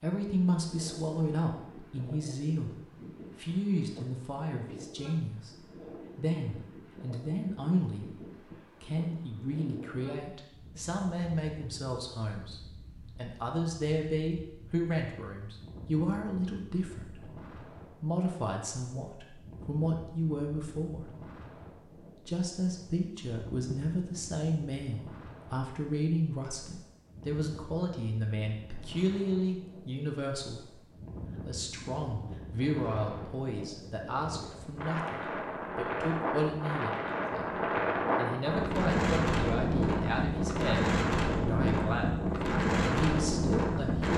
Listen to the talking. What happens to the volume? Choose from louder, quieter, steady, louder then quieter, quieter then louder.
steady.